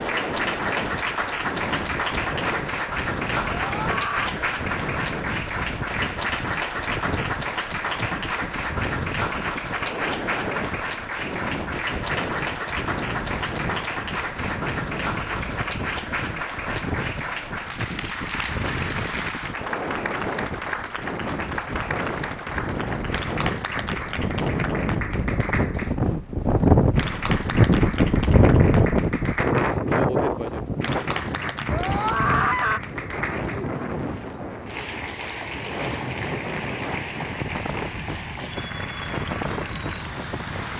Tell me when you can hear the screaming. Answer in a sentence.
You can hear the screaming from 3.6 to 4.4 s and from 31.7 to 32.8 s.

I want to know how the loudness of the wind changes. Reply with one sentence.
The loudness of the wind goes up, then down.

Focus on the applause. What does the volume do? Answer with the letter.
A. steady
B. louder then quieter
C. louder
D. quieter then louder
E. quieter
E.